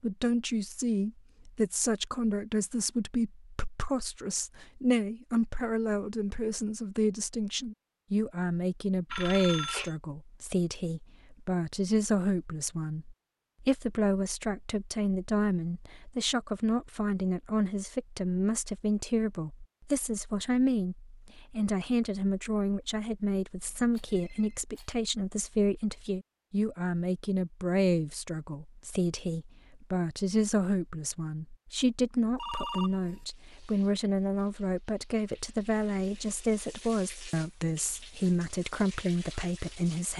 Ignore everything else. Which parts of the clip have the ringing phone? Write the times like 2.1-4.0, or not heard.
9.1-9.9, 23.6-24.6, 32.4-33.2.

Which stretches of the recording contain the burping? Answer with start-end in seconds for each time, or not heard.
not heard.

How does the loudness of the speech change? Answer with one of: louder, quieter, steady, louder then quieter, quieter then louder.
steady.